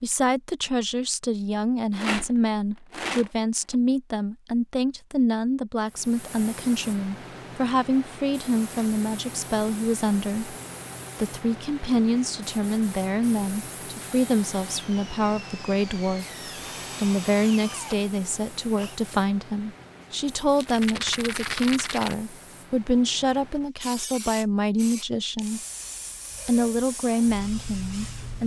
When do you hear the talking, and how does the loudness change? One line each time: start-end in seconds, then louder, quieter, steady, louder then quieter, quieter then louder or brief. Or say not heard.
0.0-10.6 steady
11.2-16.2 steady
16.9-25.6 steady
26.4-28.4 brief.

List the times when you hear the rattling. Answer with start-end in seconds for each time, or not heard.
1.9-3.8, 20.6-22.1.